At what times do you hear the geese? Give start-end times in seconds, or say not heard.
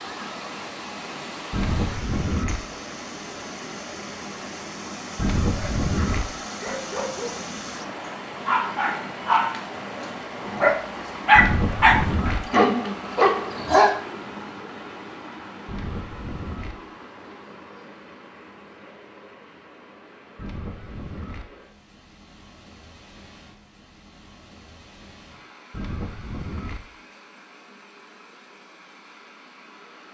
1.5-2.6, 5.2-6.2, 11.3-12.4, 15.7-16.8, 20.4-21.4, 25.7-26.8.